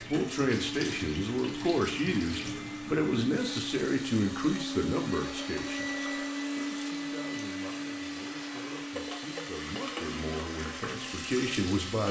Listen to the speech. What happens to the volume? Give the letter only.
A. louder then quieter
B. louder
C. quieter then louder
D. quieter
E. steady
C.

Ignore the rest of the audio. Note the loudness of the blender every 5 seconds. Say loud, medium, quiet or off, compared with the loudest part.
loud, loud, medium.